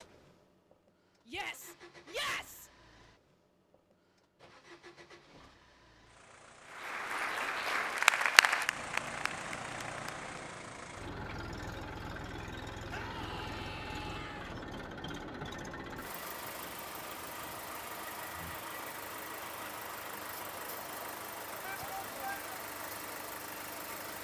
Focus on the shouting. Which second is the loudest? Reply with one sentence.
The loudest moment of the shouting is at 2 seconds.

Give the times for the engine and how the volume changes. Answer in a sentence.
You can hear the engine from 0.0 to 24.1 s, getting louder.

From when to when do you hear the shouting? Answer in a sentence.
You can hear the shouting from 1.2 to 2.7 s, from 12.9 to 14.6 s and from 21.6 to 22.5 s.